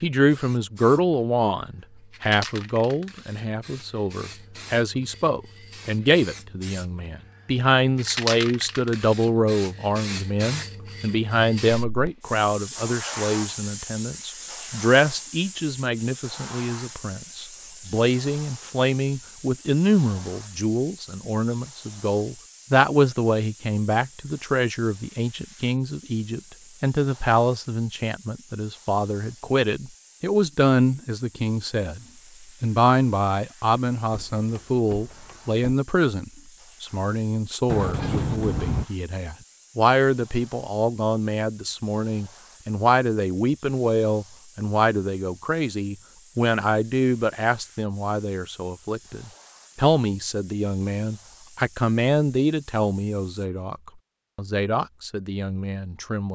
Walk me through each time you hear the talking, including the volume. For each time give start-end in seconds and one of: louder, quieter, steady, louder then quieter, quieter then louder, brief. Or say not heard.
0.0-32.0 steady
32.6-56.2 steady.